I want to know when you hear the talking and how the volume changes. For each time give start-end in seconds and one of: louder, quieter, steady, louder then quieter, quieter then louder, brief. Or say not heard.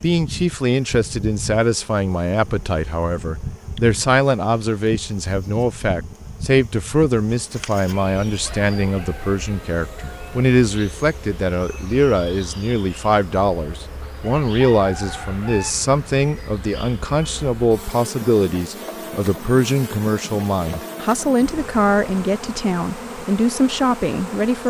0.0-24.6 steady.